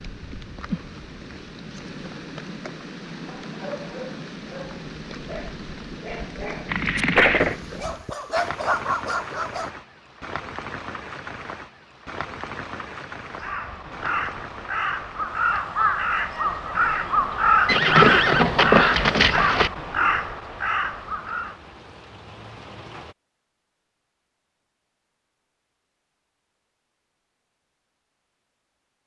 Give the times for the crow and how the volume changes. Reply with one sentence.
You can hear the crow from 13.3 to 21.6 s, getting louder then quieter.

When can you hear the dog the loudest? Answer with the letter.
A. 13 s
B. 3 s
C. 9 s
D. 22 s
C.